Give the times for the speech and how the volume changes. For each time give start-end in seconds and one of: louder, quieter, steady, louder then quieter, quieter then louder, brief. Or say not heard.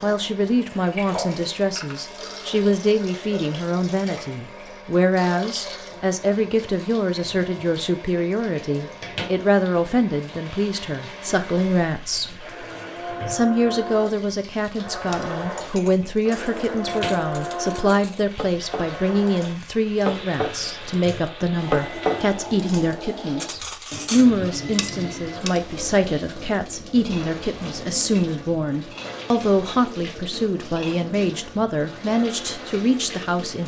0.0-12.4 steady
13.2-33.6 steady.